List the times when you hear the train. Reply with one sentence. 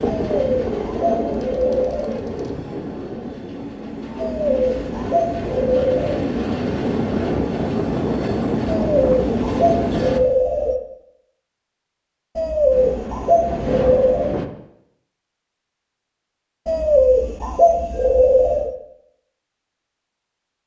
You can hear the train from 0.0 to 10.2 s and from 12.7 to 14.5 s.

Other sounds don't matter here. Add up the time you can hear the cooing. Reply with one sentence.
You can hear the cooing for 10 seconds altogether.